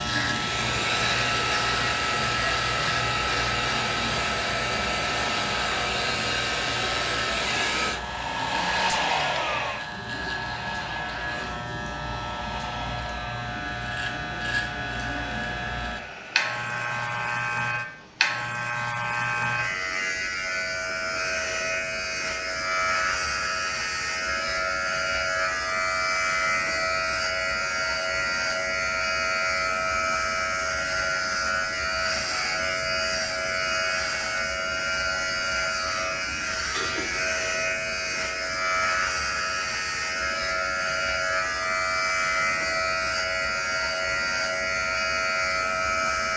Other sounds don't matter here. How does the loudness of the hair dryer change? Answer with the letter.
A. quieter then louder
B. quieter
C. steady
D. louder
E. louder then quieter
B.